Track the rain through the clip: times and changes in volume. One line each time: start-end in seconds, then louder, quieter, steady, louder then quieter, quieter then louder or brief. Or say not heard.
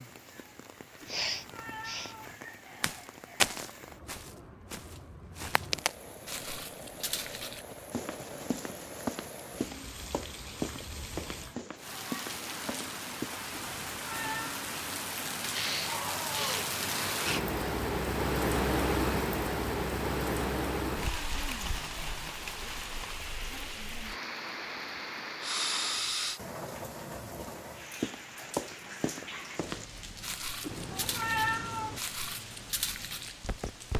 0.0-33.9 louder then quieter.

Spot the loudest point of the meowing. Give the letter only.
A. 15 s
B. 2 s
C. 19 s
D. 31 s
D.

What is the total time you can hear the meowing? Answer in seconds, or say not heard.
4 s.